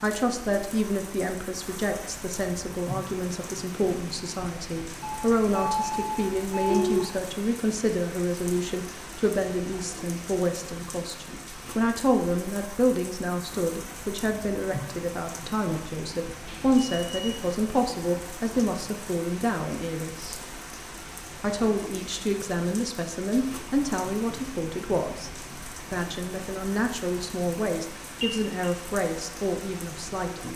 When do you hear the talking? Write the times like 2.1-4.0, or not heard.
0.0-20.4, 21.4-30.5.